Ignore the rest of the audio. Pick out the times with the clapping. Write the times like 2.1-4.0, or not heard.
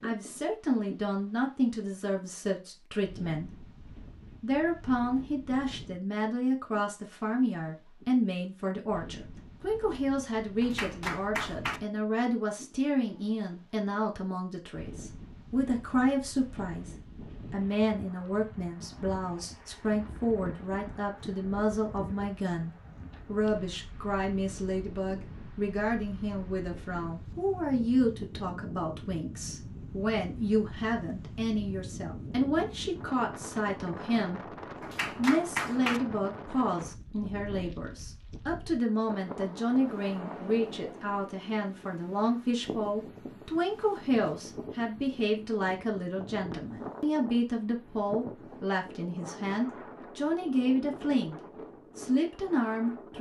10.6-11.8, 34.8-36.0.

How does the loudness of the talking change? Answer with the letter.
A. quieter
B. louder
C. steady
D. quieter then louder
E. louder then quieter
C.